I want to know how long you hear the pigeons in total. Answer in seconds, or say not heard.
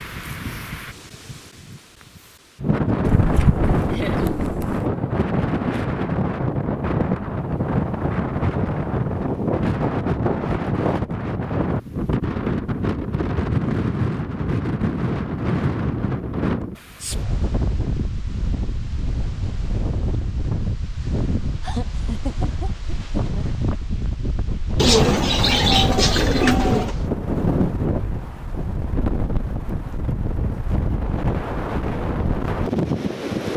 4 s.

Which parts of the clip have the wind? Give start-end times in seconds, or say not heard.
0.0-33.5.